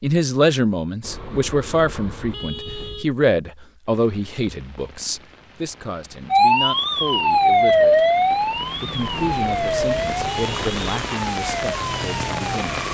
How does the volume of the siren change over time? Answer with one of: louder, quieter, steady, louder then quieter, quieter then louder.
quieter.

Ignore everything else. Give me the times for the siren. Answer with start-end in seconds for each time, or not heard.
6.3-12.8.